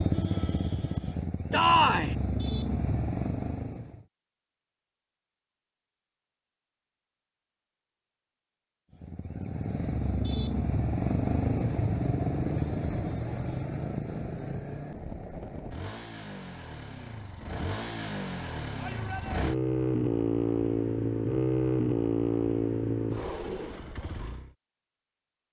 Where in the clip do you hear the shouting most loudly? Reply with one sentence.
The volume of the shouting peaks at 2 seconds.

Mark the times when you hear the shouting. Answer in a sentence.
The shouting can be heard from 1.5 to 2.1 s and from 18.8 to 19.4 s.